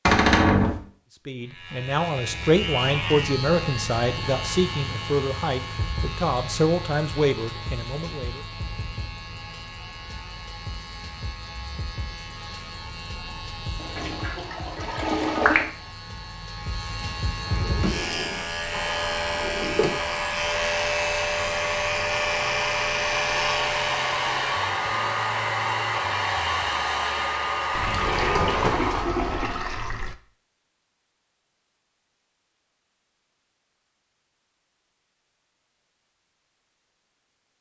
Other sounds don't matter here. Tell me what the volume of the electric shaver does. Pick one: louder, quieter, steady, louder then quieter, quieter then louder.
quieter then louder.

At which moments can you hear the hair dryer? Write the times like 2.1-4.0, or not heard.
18.7-29.1.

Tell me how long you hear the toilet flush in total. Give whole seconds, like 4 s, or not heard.
4 s.